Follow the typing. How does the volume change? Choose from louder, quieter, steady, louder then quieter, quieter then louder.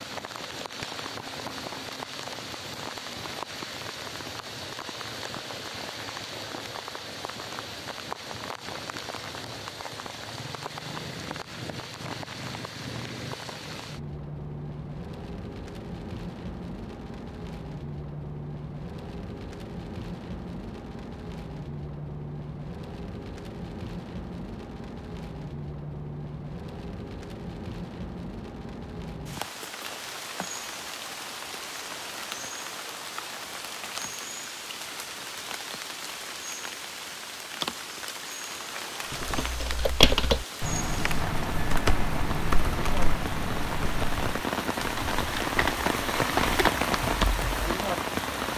quieter.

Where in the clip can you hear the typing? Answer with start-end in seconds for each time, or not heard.
39.1-47.6.